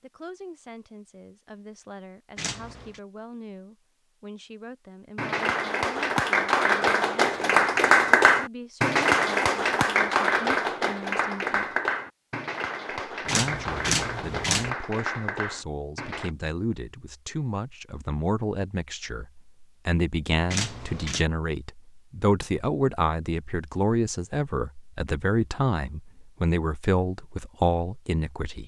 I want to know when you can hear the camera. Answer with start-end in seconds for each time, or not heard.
2.4-3.0, 13.2-14.7, 20.5-21.2.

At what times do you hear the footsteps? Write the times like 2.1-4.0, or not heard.
not heard.